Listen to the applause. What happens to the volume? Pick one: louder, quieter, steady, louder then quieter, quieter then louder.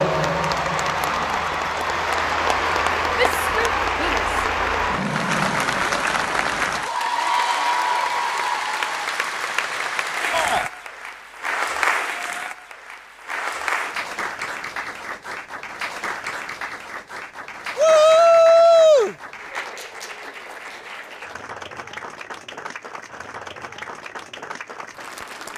quieter.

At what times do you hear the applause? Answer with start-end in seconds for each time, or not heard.
0.0-25.5.